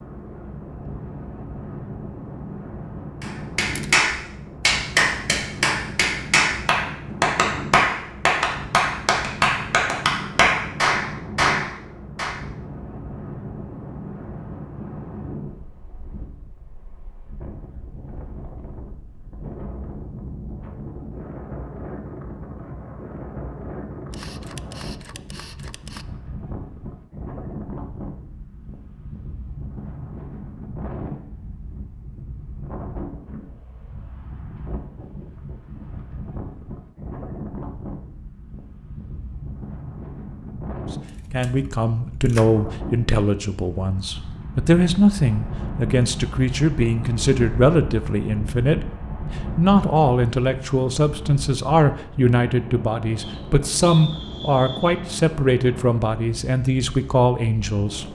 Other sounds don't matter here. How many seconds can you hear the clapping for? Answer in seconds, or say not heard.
9 s.